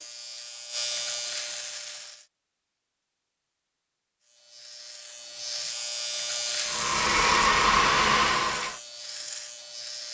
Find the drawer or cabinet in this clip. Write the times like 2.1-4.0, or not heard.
not heard.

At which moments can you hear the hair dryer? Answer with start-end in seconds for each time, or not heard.
6.7-8.8.